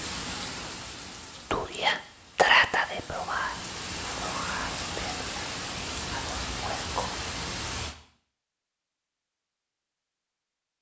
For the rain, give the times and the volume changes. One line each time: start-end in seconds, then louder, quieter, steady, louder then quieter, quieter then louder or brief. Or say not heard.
0.0-8.0 quieter then louder.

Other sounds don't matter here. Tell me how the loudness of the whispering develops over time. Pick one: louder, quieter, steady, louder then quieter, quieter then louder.
quieter.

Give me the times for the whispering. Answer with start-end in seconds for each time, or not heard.
1.3-7.2.